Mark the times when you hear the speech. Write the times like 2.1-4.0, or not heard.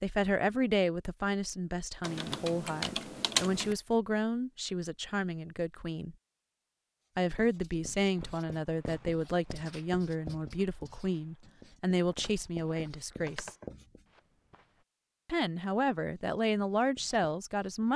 0.0-6.2, 7.2-13.6, 15.2-17.9.